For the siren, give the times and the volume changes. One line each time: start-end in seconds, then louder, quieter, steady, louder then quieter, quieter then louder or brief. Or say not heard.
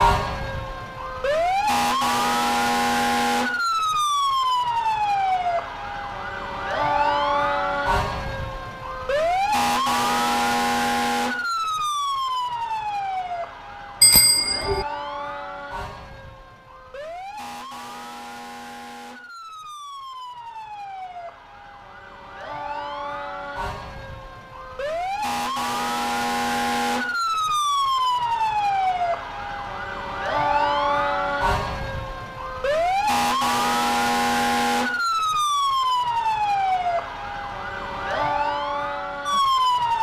0.0-39.9 quieter then louder.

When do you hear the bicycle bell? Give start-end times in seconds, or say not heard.
14.0-14.8.